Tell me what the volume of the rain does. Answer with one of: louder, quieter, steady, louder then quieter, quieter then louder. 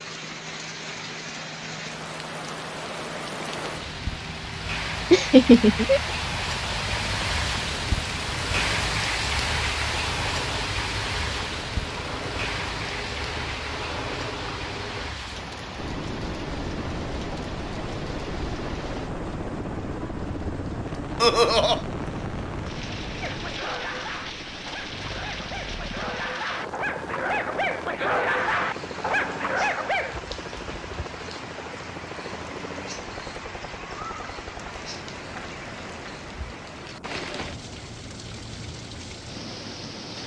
quieter.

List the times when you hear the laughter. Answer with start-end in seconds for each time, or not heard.
5.1-6.0, 21.2-21.8.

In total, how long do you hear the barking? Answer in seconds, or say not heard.
7 s.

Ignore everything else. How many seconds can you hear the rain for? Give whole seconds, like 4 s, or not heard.
40 s.